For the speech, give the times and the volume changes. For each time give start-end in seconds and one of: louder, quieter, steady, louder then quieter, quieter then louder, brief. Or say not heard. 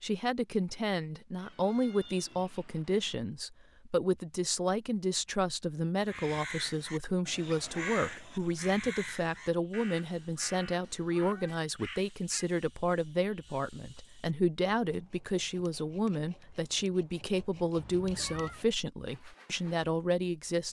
0.0-20.6 steady.